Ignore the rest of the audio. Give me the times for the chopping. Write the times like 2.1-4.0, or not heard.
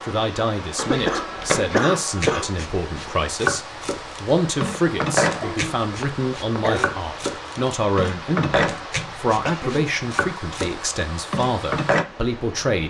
0.8-12.1.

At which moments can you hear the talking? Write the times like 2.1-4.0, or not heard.
0.0-12.8.